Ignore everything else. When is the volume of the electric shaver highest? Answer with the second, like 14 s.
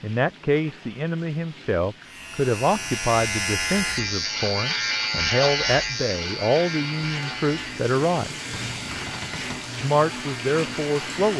5 s.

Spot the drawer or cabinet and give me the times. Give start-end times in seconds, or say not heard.
8.5-9.7.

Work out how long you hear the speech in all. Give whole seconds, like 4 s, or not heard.
10 s.